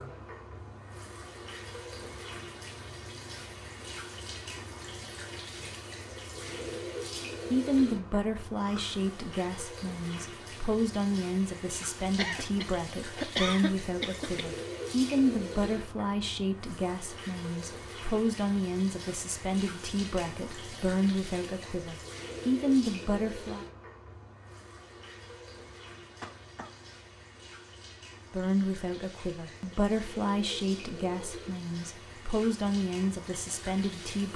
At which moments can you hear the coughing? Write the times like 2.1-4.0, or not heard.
8.6-9.1, 12.2-14.4, 26.2-26.9.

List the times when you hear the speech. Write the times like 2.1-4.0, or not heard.
7.5-23.6, 28.3-34.3.